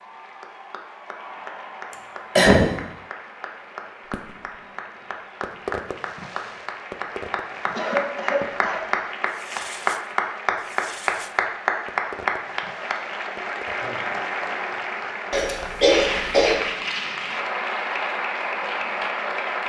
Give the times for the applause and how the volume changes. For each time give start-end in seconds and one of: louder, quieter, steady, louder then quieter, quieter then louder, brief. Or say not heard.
0.0-19.6 louder.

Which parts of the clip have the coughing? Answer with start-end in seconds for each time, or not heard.
1.9-2.6, 7.8-8.8, 15.3-16.6.